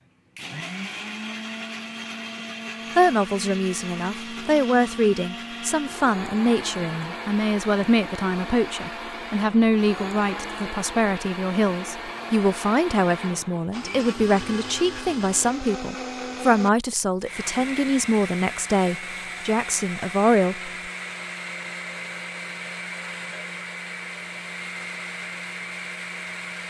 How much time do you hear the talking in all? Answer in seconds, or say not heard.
18 s.